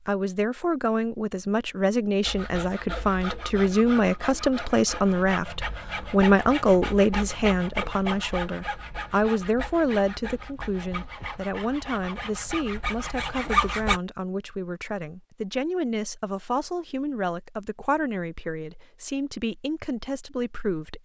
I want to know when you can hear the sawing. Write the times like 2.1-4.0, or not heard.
2.2-14.0.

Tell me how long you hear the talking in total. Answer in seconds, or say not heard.
21 s.